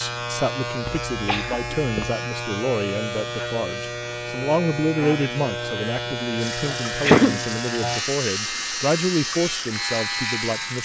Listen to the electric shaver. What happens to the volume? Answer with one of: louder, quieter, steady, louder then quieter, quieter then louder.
steady.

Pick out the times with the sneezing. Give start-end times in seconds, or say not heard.
0.8-2.1, 6.7-7.4.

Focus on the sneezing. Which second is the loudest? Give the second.
7 s.